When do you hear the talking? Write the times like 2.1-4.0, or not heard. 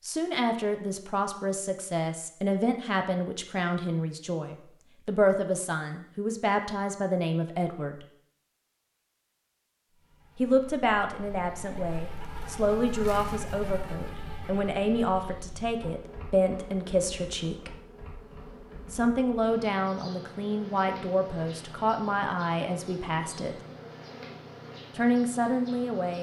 0.0-8.0, 10.3-17.8, 18.9-23.6, 24.9-26.1.